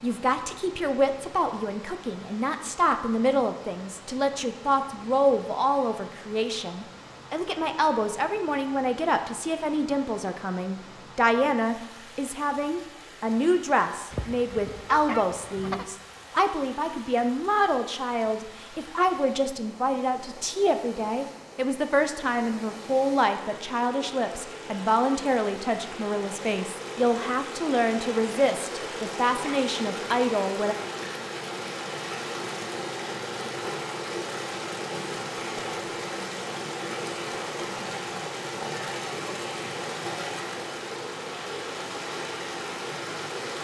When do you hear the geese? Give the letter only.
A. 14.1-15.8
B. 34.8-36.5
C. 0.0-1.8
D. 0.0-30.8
A.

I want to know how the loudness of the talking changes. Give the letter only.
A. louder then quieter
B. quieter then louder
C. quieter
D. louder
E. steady
E.